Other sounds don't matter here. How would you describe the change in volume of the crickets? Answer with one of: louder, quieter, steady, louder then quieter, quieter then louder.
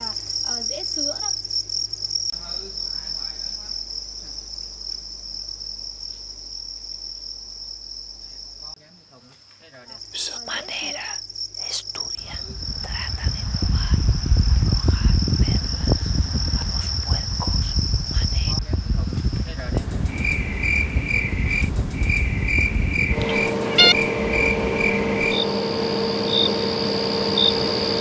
quieter then louder.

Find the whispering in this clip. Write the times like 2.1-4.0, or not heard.
10.1-18.6.